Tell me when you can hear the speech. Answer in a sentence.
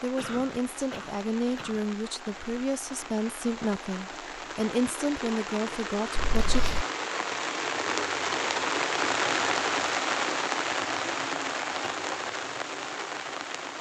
You can hear the speech from 0.0 to 6.6 s.